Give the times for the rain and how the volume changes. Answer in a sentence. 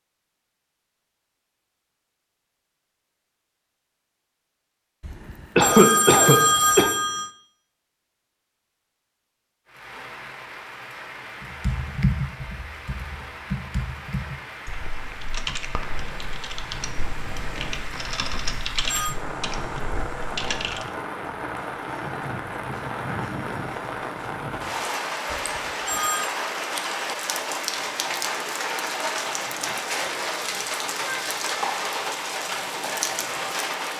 You can hear the rain from 9.7 to 33.9 s, getting louder.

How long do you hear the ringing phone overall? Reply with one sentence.
The ringing phone can be heard for 4 seconds in total.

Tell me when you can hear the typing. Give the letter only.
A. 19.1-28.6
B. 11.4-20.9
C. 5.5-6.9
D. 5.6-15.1
B.